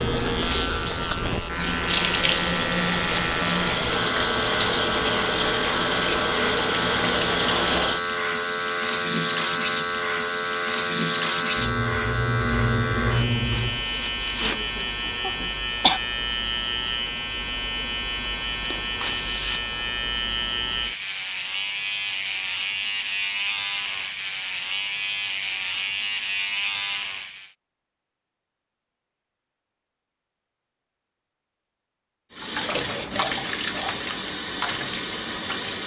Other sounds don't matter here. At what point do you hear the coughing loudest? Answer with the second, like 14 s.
16 s.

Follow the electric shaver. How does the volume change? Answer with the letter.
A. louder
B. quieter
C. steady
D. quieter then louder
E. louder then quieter
C.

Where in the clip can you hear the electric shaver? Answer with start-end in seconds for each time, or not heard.
0.0-27.5.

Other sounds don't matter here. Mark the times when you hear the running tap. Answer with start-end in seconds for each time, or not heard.
0.0-13.8, 32.3-35.8.